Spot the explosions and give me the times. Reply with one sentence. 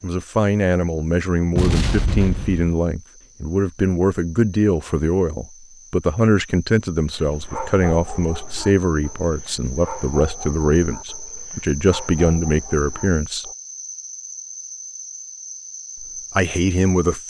The explosions can be heard from 1.6 to 2.7 s.